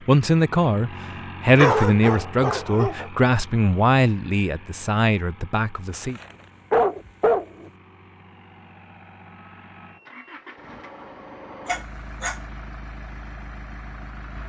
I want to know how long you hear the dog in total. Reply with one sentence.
You can hear the dog for 4 seconds altogether.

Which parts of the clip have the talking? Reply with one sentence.
You can hear the talking from 0.1 to 6.2 s.